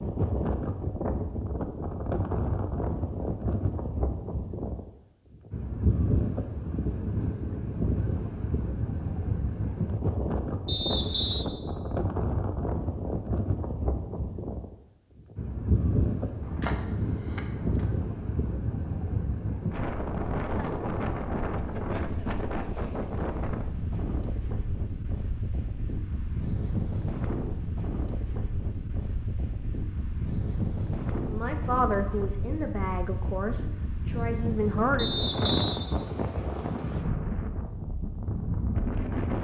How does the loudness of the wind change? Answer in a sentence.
The volume of the wind stays about the same.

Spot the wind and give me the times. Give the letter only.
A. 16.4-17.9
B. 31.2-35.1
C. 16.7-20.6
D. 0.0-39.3
D.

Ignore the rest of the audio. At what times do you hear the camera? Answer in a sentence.
The camera can be heard from 16.4 to 17.9 s.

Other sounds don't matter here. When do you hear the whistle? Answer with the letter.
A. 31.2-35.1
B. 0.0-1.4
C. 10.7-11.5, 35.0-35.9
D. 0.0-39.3
C.